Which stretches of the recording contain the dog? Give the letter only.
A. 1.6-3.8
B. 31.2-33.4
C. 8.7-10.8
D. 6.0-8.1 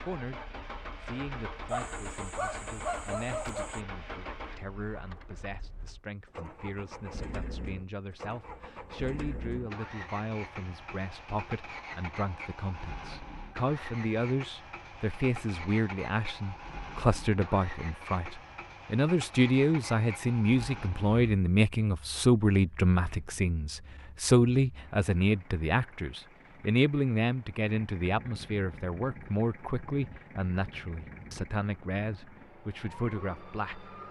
A.